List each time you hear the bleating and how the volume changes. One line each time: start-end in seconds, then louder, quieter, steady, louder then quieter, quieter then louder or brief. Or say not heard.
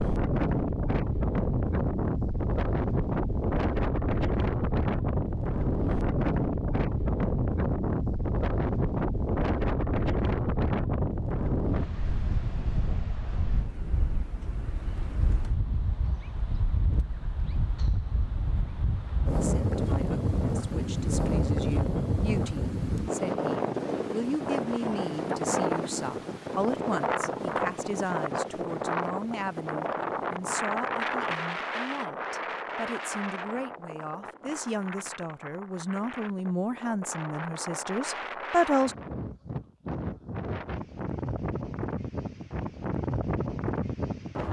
not heard.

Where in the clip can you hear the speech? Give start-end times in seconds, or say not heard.
19.2-39.0.